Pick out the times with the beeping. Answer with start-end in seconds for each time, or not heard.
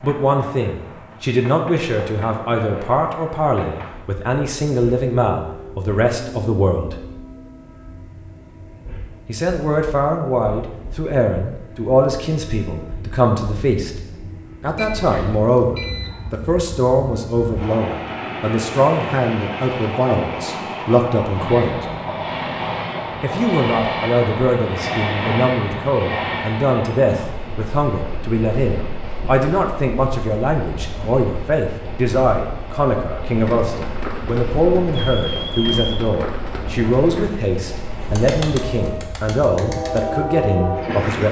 14.8-16.1, 34.9-36.1.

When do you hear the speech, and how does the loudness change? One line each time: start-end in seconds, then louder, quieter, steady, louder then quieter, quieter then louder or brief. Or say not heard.
0.0-7.0 steady
9.2-13.9 steady
14.6-21.9 steady
23.2-41.2 steady.